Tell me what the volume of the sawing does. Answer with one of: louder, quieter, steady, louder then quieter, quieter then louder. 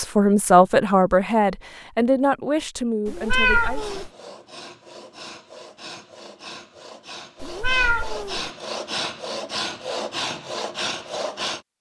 louder.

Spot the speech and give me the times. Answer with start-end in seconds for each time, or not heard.
0.0-3.9.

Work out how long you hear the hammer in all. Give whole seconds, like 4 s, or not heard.
not heard.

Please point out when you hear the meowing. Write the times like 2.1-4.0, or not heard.
3.0-4.1, 7.4-8.5.